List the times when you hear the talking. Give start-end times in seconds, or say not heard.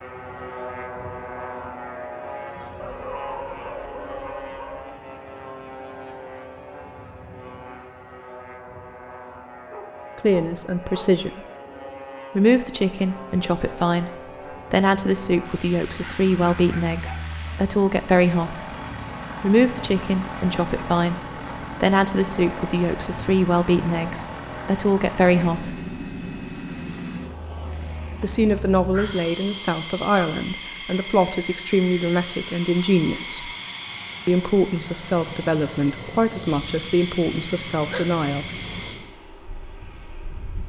10.2-11.4, 12.3-18.8, 19.4-25.9, 28.2-33.5, 34.2-38.5.